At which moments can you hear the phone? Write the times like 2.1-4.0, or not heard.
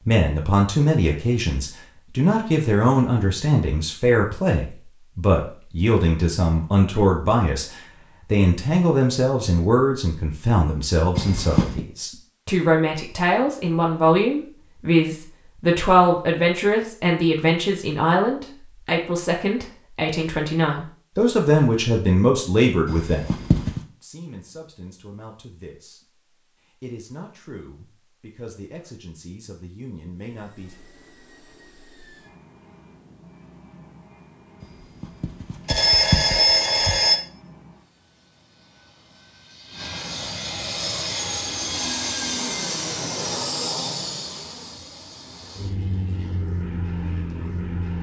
11.2-11.8, 22.9-23.8, 35.0-37.2.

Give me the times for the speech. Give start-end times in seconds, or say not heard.
0.1-26.1, 26.8-30.8.